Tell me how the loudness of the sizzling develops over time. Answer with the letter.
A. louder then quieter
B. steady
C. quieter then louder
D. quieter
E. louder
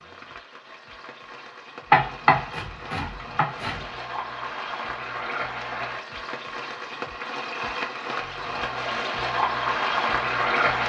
E.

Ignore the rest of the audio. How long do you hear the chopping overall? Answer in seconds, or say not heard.
2 s.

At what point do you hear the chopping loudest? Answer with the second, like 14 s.
2 s.